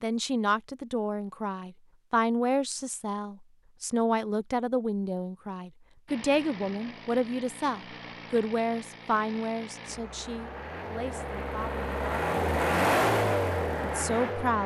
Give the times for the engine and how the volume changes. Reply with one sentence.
You can hear the engine from 6.0 to 14.6 s, getting louder.